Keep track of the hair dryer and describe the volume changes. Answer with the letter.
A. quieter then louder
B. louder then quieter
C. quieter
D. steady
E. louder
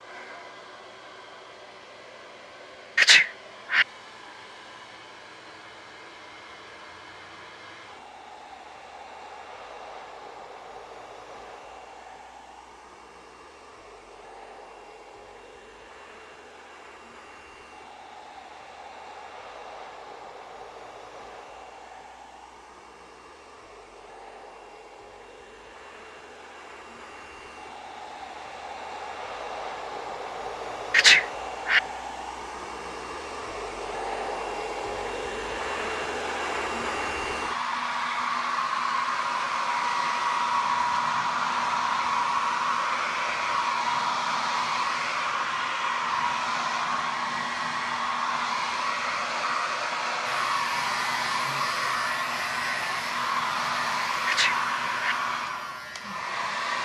E.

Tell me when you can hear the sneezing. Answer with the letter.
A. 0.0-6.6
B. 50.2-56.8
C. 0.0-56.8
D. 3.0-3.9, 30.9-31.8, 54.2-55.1
D.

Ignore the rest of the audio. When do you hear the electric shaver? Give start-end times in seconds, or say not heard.
50.2-56.8.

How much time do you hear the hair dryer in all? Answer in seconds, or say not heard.
57 s.